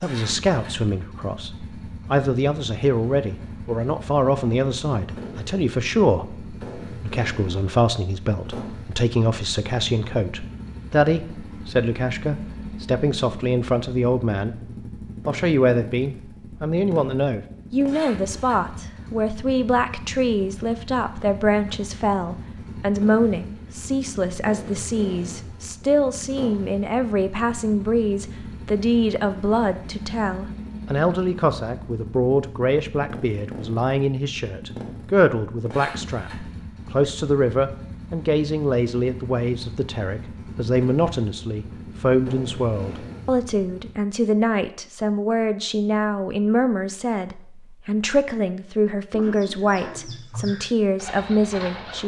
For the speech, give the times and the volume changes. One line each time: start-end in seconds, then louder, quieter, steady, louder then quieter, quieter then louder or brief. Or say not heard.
0.0-14.6 steady
15.2-52.0 steady.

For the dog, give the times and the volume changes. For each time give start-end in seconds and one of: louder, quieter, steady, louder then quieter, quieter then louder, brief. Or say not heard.
not heard.